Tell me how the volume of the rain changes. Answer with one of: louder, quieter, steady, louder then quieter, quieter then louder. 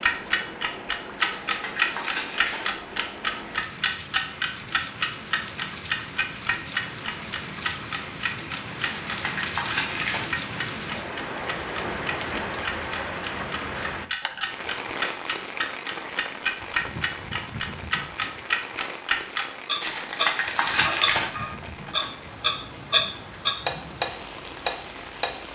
louder then quieter.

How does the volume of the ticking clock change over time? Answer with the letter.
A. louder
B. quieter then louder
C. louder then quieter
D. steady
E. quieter
B.